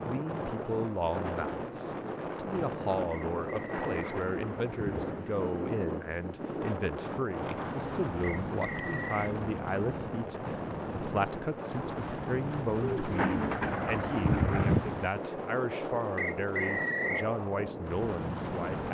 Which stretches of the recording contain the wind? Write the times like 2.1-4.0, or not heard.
0.0-18.8.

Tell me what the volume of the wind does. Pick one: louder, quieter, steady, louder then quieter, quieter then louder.
steady.